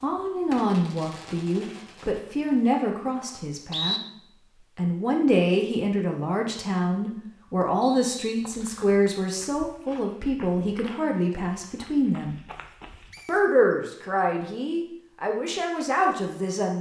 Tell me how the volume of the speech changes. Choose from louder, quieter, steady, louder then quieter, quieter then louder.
steady.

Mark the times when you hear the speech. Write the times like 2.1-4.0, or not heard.
0.0-4.0, 4.8-12.4, 13.2-16.7.